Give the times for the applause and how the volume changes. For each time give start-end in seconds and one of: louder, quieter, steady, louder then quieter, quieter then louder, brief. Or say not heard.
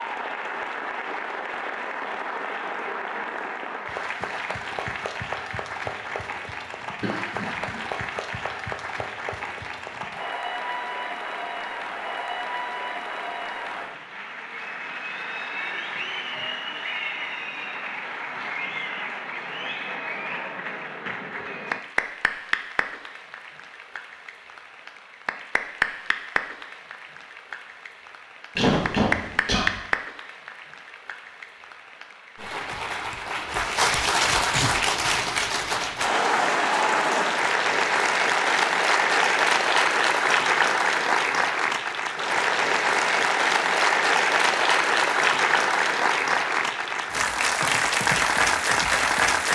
0.0-49.4 louder.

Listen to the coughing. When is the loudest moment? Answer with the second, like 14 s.
29 s.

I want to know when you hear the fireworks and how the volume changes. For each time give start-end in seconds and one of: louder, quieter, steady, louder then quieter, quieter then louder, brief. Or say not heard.
not heard.